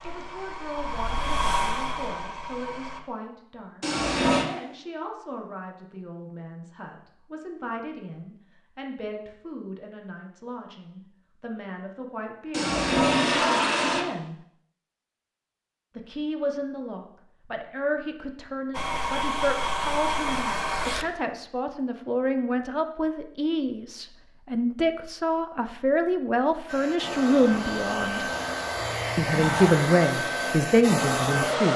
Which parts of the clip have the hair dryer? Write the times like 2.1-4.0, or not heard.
0.0-3.0, 18.7-21.1, 26.6-31.7.